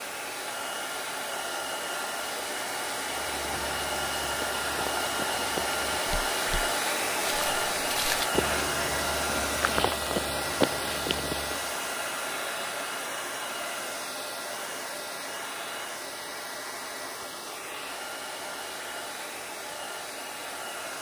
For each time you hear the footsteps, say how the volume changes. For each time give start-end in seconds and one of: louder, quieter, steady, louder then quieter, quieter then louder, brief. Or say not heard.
3.0-11.7 louder.